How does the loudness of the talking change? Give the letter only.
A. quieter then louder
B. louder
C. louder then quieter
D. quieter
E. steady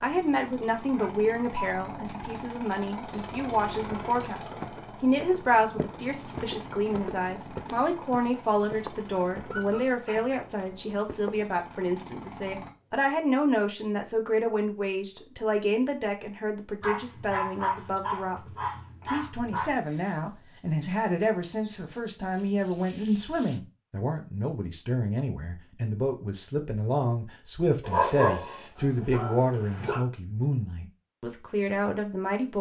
E.